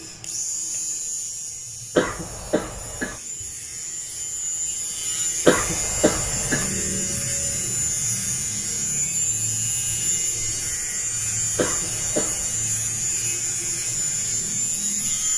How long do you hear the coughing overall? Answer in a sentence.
The coughing can be heard for 3 seconds in total.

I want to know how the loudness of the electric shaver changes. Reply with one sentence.
The loudness of the electric shaver goes up.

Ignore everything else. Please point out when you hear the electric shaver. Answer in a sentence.
You can hear the electric shaver from 0.0 to 15.3 s.